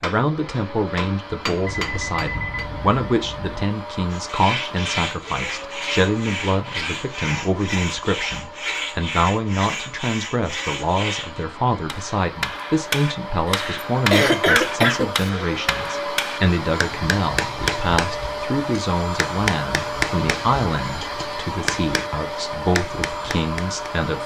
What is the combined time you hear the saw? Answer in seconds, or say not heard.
7 s.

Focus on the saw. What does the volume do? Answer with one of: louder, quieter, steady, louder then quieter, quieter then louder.
steady.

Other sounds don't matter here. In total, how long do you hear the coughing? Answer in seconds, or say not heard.
2 s.